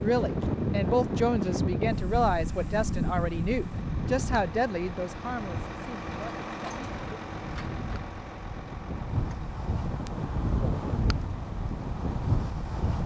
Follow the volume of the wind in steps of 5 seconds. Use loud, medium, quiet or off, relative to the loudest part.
loud, medium, loud.